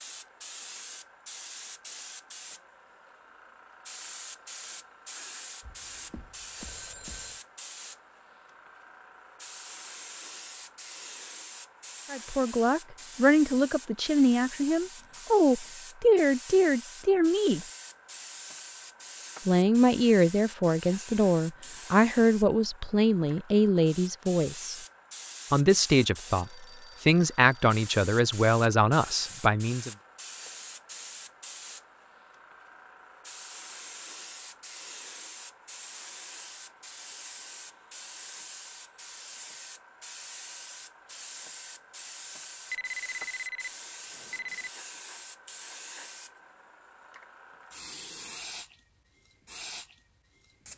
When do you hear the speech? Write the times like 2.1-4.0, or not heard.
12.1-17.6, 19.4-24.8, 25.5-29.9.